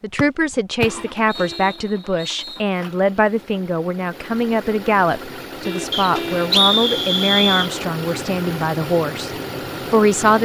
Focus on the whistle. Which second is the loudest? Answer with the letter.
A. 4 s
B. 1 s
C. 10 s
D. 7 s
D.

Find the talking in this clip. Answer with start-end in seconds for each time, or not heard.
0.0-9.3, 9.9-10.3.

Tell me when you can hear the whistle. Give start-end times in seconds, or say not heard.
0.1-2.6, 5.9-7.7.